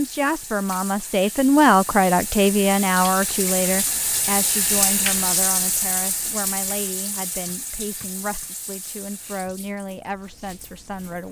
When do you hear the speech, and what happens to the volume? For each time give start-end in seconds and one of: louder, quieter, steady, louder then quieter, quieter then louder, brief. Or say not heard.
0.0-11.2 quieter.